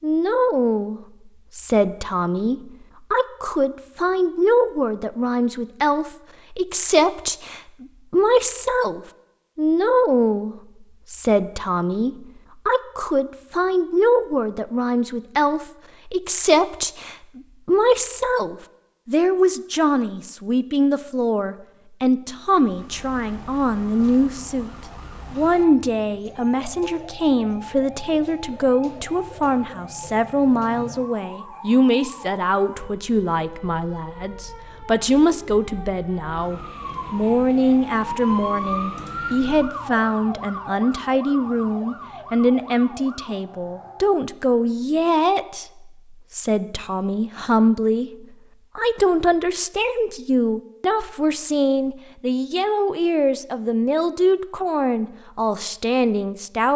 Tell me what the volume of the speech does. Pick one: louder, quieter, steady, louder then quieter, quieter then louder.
steady.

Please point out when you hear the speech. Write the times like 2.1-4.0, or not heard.
0.0-24.7, 25.3-56.7.